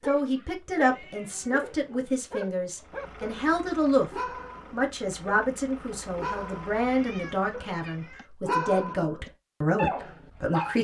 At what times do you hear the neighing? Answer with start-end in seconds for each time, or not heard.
not heard.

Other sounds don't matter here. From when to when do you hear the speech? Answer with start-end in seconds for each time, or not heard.
0.1-4.1, 4.7-10.7.